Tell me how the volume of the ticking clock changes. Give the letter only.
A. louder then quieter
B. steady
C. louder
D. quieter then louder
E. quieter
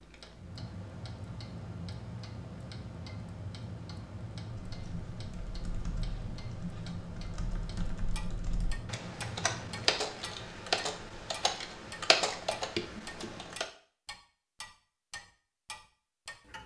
C.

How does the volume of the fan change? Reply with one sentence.
The volume of the fan stays about the same.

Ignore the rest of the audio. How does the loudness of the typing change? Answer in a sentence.
The volume of the typing goes up.